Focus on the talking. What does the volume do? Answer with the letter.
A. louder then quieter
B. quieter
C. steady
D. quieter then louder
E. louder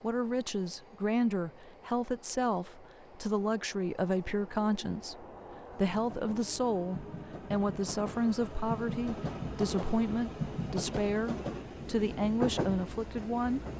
C.